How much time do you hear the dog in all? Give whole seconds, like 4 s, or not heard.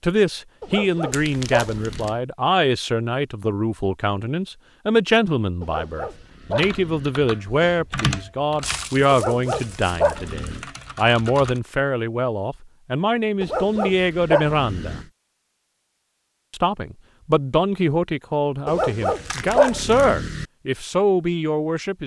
8 s.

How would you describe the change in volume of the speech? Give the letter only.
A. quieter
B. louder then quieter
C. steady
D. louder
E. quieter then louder
C.